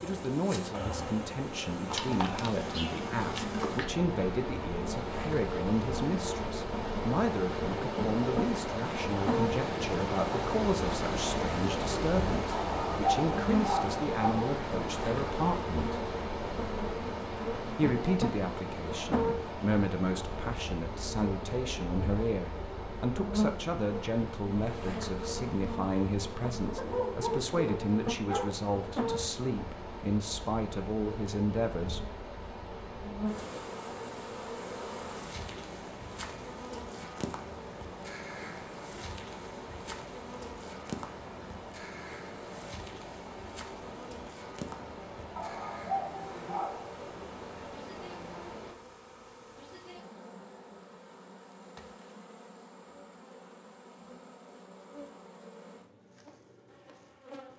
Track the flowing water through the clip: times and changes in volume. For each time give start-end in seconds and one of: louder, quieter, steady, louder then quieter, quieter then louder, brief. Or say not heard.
0.0-48.8 quieter.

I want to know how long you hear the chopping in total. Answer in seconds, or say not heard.
not heard.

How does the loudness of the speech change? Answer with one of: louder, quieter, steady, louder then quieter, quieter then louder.
steady.